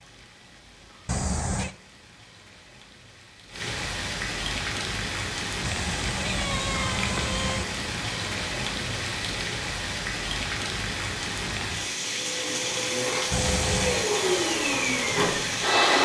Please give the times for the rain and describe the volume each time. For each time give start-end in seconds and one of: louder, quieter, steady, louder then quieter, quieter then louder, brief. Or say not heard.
0.0-15.9 louder.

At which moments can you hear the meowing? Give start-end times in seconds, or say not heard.
1.1-1.8, 5.6-7.7, 13.3-14.1.